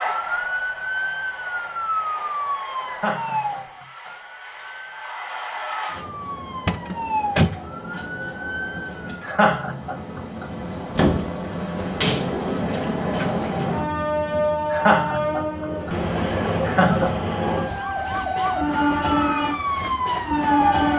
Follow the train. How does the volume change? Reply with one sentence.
The volume of the train goes up.